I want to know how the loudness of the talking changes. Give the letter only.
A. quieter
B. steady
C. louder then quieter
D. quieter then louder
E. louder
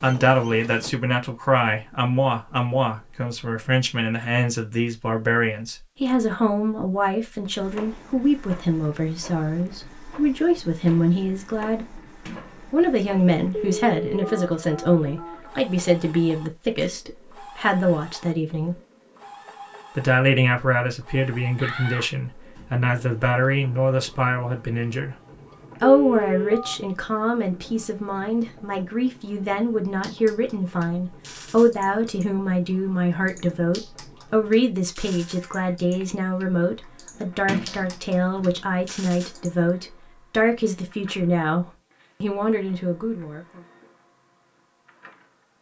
B.